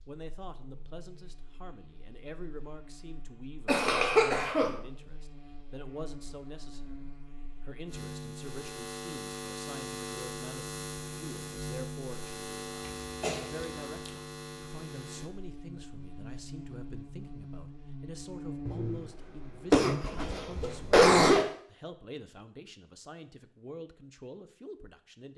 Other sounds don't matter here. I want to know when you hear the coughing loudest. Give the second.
21 s.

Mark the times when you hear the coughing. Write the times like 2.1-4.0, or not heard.
3.6-4.8, 13.0-14.2, 18.6-21.4.